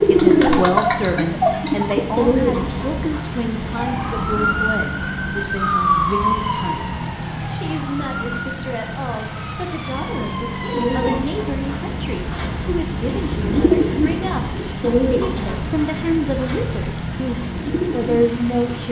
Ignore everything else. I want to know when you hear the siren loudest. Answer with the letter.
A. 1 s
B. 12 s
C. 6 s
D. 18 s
C.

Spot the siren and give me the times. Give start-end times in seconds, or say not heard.
3.8-11.2.